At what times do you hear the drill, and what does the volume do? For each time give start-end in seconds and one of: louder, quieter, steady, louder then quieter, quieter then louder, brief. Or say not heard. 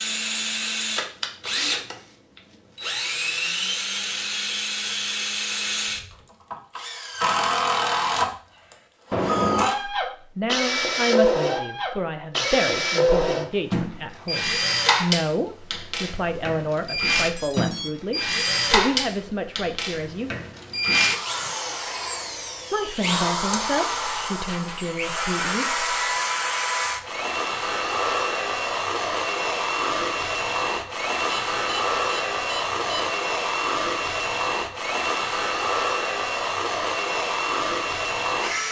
0.0-38.6 steady.